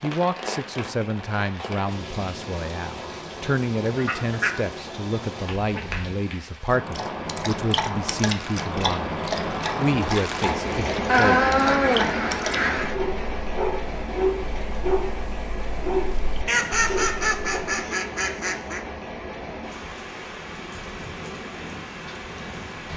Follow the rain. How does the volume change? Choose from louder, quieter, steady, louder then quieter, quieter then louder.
louder then quieter.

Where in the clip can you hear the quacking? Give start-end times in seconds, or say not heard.
4.0-4.5, 11.1-12.9, 16.4-18.8.